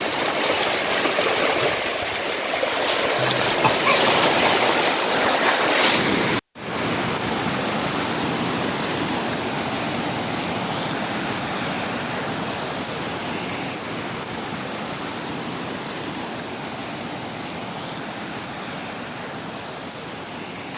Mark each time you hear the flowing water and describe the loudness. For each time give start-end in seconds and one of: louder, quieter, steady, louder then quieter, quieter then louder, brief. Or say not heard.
0.0-20.7 quieter.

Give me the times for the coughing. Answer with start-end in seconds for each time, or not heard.
3.1-4.2.